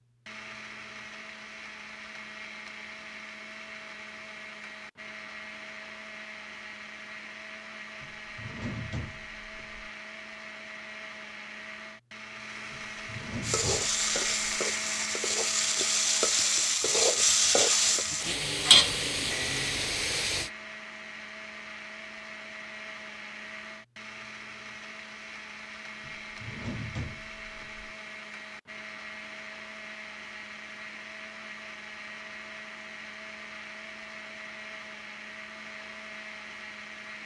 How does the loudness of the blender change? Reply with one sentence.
The loudness of the blender stays about the same.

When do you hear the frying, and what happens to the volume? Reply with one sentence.
The frying can be heard from 13.4 to 20.5 s, getting louder then quieter.